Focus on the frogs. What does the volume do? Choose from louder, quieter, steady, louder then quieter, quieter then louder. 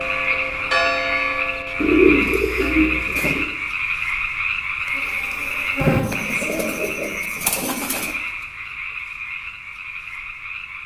quieter.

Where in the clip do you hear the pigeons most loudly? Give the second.
2 s.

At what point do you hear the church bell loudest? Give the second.
1 s.